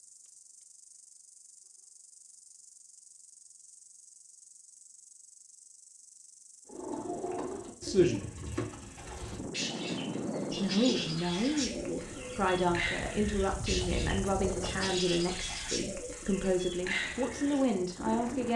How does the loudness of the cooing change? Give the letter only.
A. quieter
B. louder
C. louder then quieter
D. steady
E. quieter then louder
D.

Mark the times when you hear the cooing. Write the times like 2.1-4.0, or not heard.
6.7-18.5.